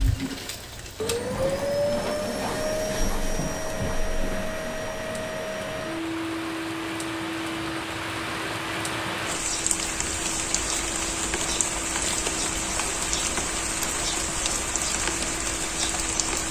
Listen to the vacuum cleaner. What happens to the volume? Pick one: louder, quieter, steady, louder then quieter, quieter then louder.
quieter.